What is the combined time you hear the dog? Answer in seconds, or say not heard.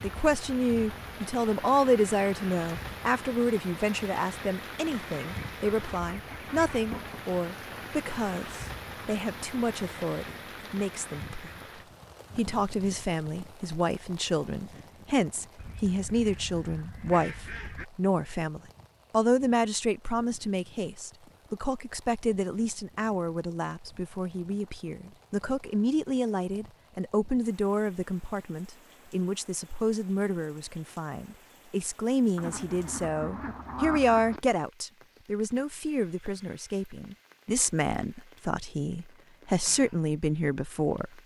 not heard.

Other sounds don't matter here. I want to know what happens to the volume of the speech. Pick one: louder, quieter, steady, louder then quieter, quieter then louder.
steady.